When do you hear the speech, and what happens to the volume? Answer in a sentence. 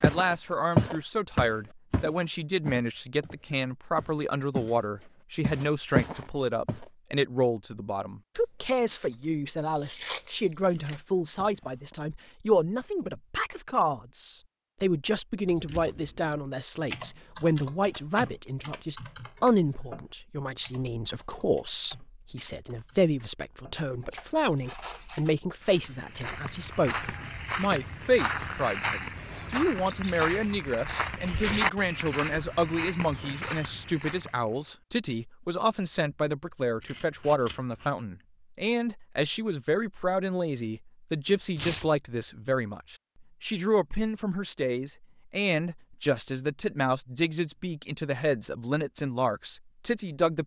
The speech can be heard from 0.0 to 50.4 s, at a steady volume.